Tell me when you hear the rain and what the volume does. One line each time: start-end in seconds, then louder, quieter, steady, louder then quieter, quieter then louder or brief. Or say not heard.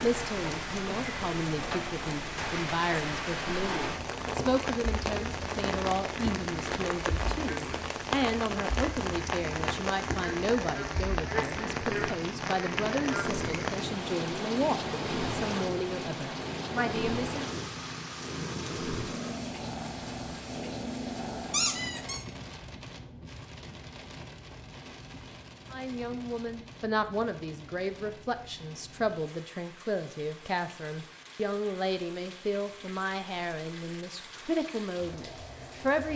0.0-36.1 quieter.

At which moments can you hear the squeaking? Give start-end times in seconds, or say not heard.
4.2-4.7, 21.5-22.2.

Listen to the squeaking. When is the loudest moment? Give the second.
22 s.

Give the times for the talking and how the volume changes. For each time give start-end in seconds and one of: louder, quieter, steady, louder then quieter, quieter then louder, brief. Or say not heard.
0.0-17.4 steady
25.7-36.1 steady.